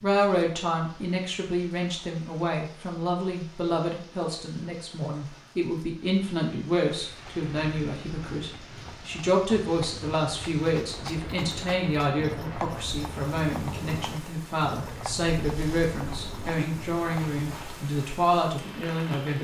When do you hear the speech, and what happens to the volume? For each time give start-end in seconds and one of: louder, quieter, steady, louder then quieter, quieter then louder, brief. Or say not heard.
0.0-19.3 steady.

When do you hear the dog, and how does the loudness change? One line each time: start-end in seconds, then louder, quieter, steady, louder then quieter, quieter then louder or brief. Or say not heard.
not heard.